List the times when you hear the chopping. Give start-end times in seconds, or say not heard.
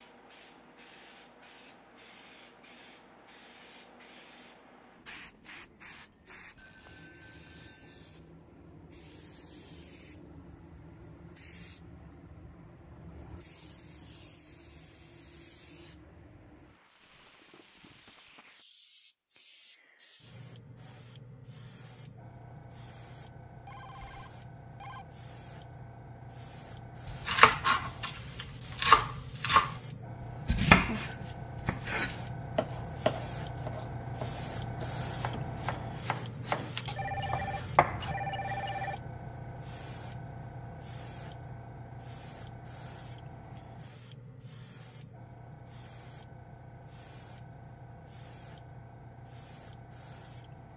27.1-29.8, 30.4-38.1.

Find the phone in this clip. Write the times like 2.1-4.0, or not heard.
6.5-8.3, 23.4-25.1, 37.0-39.0.